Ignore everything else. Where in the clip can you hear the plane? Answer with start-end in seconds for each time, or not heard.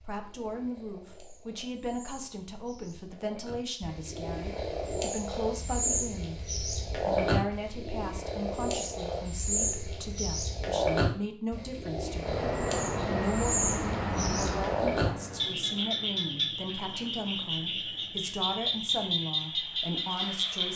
12.2-20.7.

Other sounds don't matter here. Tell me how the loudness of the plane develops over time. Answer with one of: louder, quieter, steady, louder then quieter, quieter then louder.
quieter.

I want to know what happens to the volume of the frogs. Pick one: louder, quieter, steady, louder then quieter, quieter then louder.
louder.